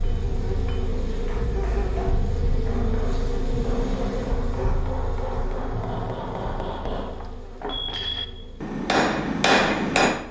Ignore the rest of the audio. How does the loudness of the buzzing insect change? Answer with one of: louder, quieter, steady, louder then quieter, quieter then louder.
quieter.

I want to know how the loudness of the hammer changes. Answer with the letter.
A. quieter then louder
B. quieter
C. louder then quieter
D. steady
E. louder
E.